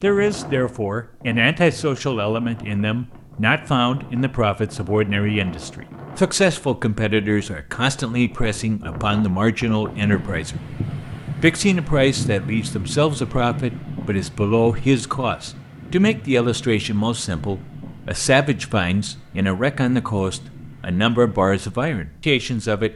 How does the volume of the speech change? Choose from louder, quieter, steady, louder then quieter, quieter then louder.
steady.